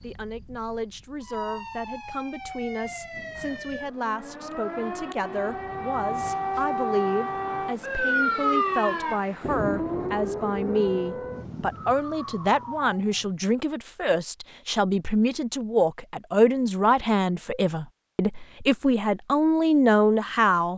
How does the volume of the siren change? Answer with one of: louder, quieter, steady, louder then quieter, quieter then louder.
louder then quieter.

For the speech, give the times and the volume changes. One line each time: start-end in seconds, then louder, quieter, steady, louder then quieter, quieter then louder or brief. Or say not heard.
0.0-20.7 louder.